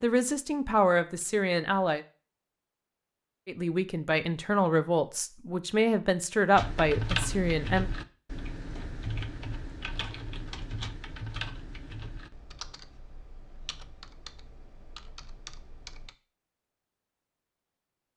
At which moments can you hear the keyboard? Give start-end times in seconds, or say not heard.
6.5-16.1.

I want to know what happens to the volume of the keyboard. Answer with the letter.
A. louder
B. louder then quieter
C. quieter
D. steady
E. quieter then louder
C.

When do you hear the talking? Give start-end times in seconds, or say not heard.
0.0-2.0, 3.5-7.9.